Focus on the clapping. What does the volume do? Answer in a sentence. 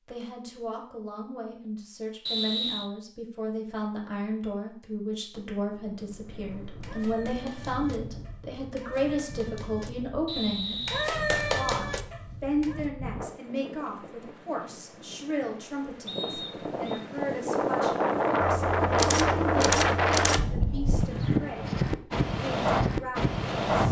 The loudness of the clapping goes up.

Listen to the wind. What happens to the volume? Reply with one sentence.
The loudness of the wind goes up.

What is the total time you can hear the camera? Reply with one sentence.
The camera can be heard for 2 seconds in total.